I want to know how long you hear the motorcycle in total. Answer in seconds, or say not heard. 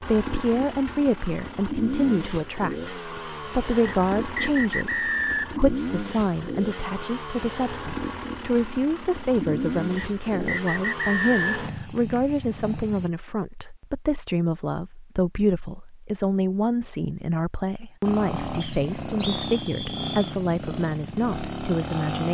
17 s.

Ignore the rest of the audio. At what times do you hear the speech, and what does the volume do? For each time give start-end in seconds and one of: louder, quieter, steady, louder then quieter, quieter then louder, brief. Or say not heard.
0.0-22.2 steady.